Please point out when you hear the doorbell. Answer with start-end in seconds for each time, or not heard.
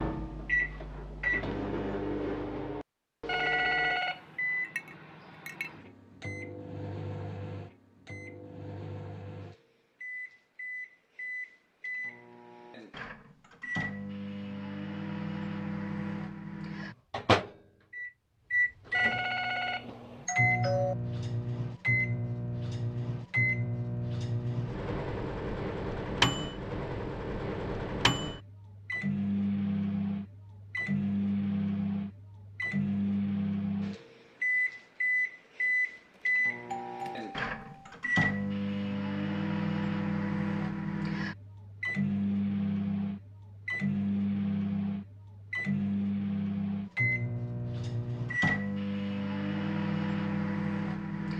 3.2-4.2, 18.9-20.9, 36.1-38.0.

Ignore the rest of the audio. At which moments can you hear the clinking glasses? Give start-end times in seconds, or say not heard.
4.6-5.7.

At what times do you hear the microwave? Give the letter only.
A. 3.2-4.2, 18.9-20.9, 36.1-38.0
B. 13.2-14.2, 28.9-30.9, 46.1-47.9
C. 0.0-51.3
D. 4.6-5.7
C.